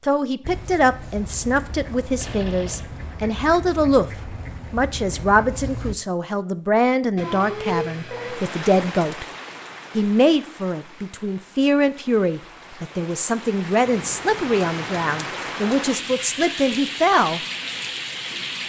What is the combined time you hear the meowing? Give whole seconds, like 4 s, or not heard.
3 s.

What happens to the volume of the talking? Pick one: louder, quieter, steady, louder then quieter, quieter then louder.
steady.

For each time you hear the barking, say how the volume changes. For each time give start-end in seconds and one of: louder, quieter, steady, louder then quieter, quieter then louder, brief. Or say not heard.
not heard.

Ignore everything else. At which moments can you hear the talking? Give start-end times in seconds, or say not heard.
0.1-9.2, 9.9-17.4.